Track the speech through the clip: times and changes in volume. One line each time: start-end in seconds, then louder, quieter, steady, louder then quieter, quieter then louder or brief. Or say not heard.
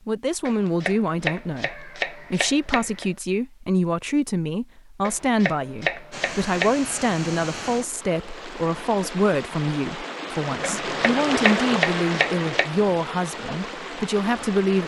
0.1-14.8 steady.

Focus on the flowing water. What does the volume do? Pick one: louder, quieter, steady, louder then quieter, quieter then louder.
louder then quieter.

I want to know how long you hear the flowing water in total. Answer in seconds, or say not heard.
9 s.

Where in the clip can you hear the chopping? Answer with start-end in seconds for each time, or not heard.
0.5-3.1, 5.0-6.8, 10.8-12.7.